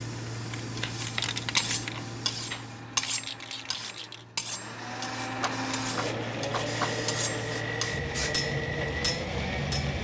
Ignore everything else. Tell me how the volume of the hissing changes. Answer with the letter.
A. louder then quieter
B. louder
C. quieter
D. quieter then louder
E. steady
D.